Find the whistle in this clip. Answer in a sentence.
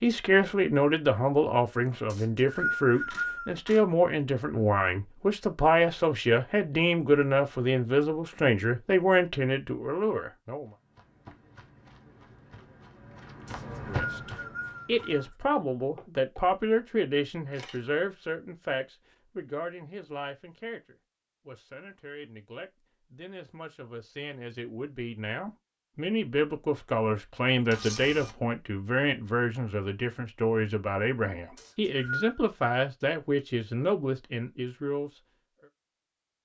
You can hear the whistle from 2.0 to 3.6 s, from 13.4 to 15.3 s and from 31.6 to 32.4 s.